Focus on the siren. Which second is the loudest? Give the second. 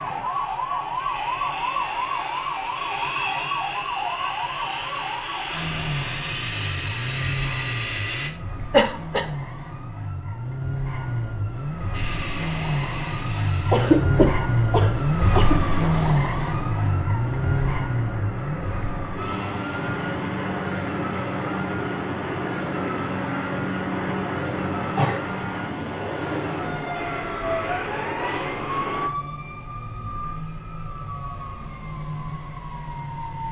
16 s.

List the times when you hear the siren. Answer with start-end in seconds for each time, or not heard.
0.0-33.4.